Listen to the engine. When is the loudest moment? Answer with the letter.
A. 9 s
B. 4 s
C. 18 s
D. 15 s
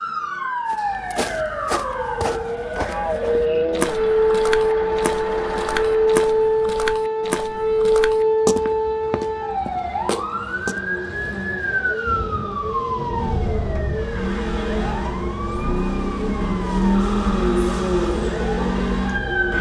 C.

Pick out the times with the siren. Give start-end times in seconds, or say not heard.
0.0-19.5.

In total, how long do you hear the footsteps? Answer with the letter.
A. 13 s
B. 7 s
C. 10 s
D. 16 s
C.